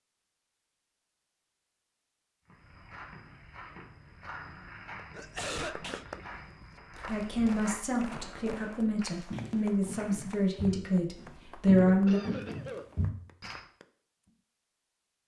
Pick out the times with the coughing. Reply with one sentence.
You can hear the coughing from 5.1 to 6.0 s and from 11.8 to 12.8 s.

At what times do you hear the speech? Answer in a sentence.
You can hear the speech from 7.0 to 12.2 s.